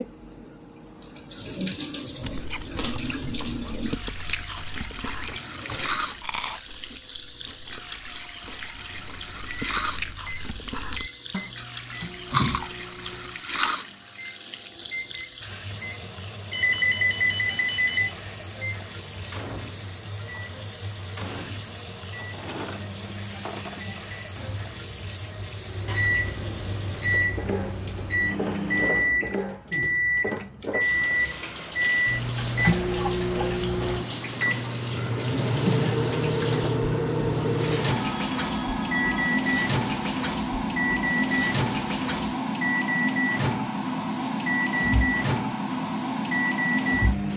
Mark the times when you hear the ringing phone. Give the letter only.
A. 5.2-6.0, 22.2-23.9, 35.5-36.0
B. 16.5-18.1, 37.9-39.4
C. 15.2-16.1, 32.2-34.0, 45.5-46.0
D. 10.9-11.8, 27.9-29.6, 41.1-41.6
B.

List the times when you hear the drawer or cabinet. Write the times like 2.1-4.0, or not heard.
5.2-6.0, 22.2-23.9, 35.5-36.0.